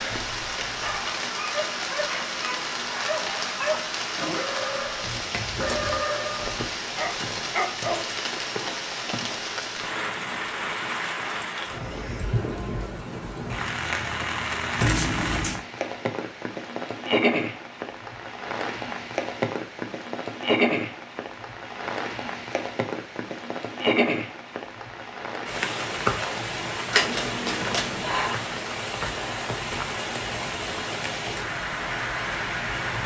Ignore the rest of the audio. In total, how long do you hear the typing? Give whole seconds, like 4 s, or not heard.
not heard.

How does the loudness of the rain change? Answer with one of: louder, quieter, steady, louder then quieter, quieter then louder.
steady.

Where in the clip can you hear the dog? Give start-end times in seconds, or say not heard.
0.8-8.0.